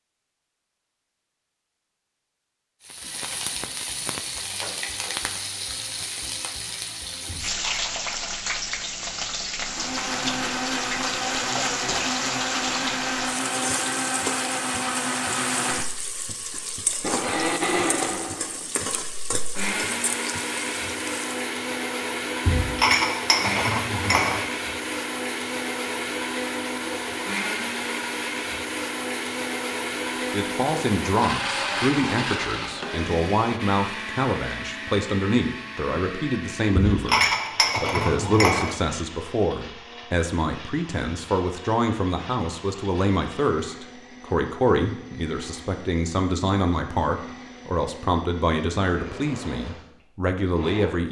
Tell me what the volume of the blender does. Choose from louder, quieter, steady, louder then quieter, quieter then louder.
quieter.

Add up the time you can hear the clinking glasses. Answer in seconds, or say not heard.
5 s.